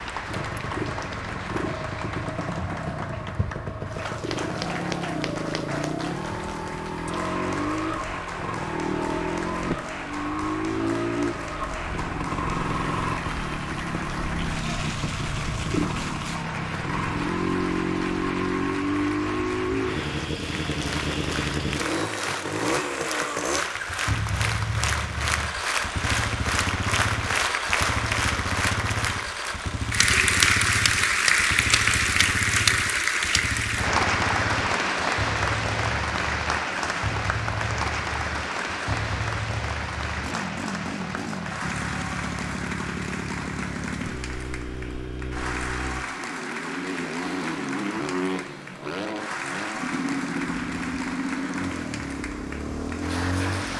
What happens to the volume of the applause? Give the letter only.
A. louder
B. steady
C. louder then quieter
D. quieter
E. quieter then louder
C.